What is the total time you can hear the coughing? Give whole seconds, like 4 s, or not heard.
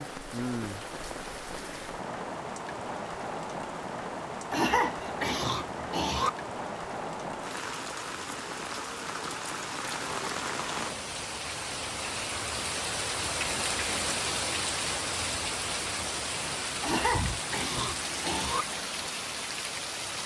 4 s.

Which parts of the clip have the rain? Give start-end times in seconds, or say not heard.
0.0-20.2.